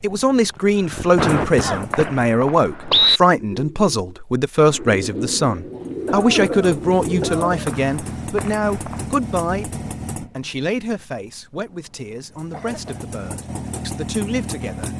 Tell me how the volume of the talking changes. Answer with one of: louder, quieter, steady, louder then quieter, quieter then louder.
quieter.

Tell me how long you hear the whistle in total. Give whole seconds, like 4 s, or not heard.
3 s.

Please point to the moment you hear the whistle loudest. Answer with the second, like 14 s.
3 s.